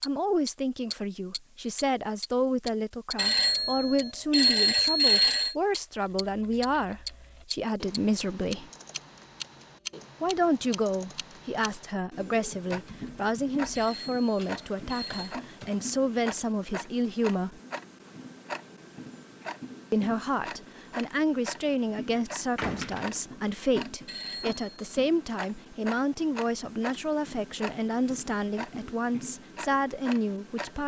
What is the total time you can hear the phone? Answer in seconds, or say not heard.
5 s.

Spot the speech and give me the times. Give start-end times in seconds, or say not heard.
0.0-8.7, 10.2-17.6, 19.9-30.8.